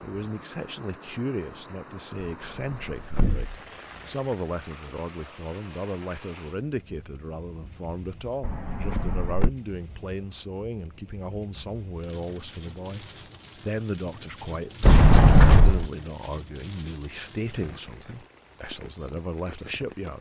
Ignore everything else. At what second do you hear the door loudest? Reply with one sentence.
The volume of the door peaks at 15 seconds.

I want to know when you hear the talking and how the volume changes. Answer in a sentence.
The talking can be heard from 0.0 to 20.1 s, at a steady volume.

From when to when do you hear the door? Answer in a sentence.
The door can be heard from 2.2 to 3.5 s, from 8.4 to 9.5 s and from 14.8 to 15.8 s.